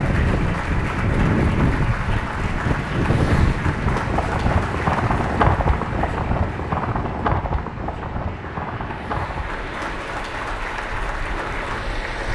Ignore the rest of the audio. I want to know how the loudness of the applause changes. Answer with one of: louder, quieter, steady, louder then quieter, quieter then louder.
quieter then louder.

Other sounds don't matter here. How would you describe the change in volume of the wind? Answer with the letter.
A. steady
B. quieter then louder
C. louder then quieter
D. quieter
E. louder
D.